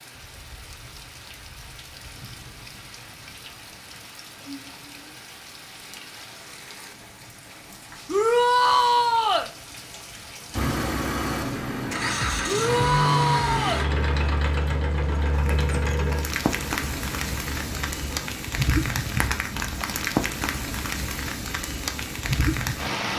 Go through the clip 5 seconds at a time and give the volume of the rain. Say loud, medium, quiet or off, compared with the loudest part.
quiet, quiet, quiet, loud, loud.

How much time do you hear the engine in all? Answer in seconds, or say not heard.
8 s.